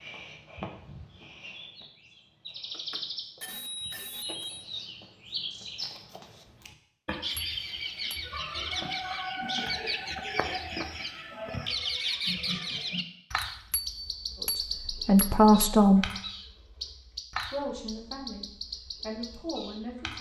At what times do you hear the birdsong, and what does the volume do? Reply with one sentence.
You can hear the birdsong from 0.0 to 20.1 s, getting louder then quieter.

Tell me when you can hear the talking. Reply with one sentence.
You can hear the talking from 14.4 to 16.1 s and from 17.4 to 20.1 s.